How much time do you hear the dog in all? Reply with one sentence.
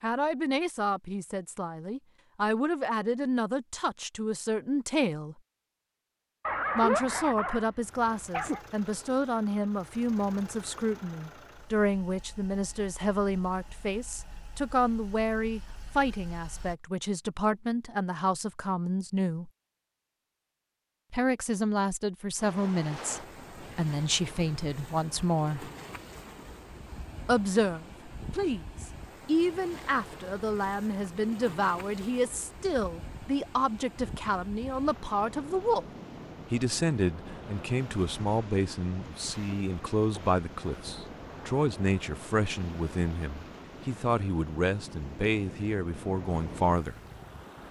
You can hear the dog for 2 seconds altogether.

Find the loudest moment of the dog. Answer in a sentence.
The volume of the dog peaks at 7 seconds.